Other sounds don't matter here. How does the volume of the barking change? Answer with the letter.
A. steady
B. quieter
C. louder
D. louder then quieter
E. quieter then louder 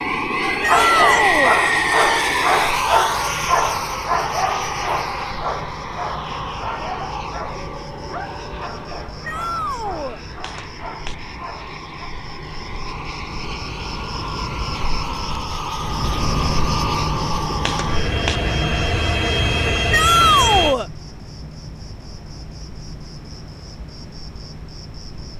B.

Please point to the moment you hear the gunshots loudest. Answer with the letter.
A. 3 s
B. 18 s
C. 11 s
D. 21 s
B.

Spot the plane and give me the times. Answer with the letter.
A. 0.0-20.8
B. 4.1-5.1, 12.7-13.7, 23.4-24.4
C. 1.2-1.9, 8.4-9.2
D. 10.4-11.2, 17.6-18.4
A.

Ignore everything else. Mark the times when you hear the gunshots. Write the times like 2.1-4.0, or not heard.
10.4-11.2, 17.6-18.4.